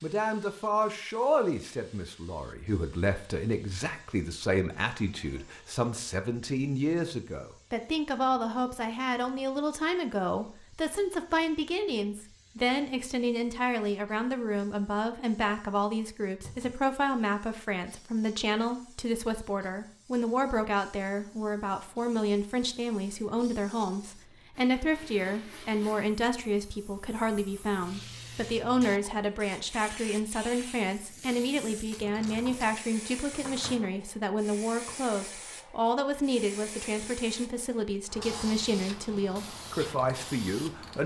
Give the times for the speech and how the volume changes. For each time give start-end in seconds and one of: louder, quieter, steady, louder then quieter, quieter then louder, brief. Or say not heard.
0.0-41.0 steady.